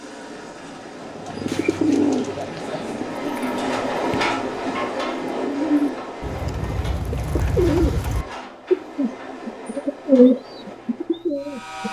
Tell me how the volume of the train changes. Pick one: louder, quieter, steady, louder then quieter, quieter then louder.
louder then quieter.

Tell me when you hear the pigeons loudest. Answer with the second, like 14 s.
10 s.